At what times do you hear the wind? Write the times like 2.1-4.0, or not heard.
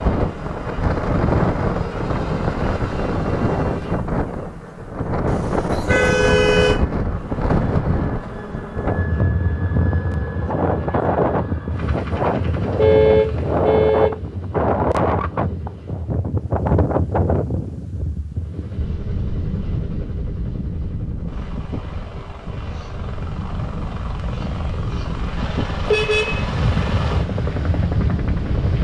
0.0-28.7.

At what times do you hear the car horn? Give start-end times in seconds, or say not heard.
5.2-6.8, 12.8-14.1, 25.9-26.4.